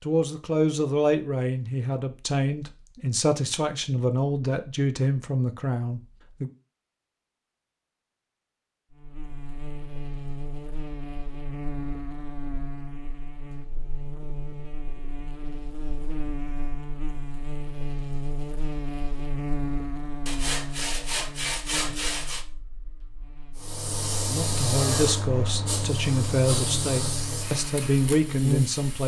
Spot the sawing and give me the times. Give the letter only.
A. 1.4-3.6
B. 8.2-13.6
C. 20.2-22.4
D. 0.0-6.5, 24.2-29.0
C.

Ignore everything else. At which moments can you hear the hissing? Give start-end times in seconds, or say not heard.
23.6-29.0.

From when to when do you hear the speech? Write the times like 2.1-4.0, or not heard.
0.0-6.5, 24.2-29.0.